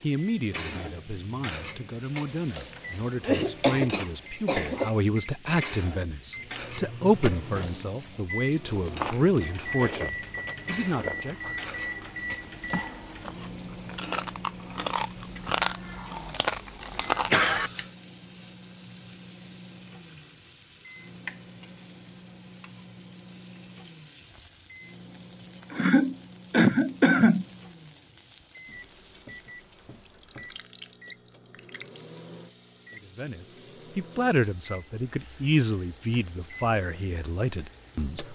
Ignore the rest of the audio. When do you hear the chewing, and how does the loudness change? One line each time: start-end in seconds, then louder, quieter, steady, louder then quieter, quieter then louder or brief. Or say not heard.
8.7-17.5 louder.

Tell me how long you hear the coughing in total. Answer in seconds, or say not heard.
4 s.